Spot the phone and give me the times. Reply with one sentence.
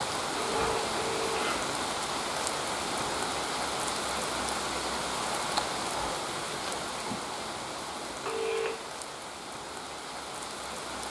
The phone can be heard from 0.3 to 1.8 s and from 8.2 to 8.9 s.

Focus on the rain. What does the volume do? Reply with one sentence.
The loudness of the rain goes down.